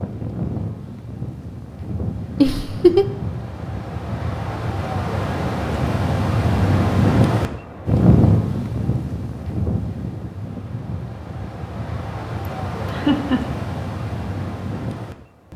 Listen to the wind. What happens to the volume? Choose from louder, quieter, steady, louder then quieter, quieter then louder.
louder then quieter.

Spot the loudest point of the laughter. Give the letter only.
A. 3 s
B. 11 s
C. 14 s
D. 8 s
A.